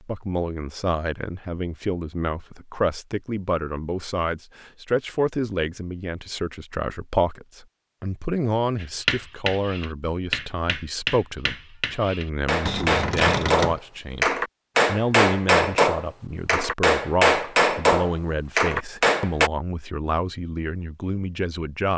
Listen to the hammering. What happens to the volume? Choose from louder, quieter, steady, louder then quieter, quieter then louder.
louder.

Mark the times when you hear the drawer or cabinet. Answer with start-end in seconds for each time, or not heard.
12.7-13.8.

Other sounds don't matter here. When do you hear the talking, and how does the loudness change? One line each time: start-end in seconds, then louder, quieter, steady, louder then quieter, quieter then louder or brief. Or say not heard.
0.0-21.9 steady.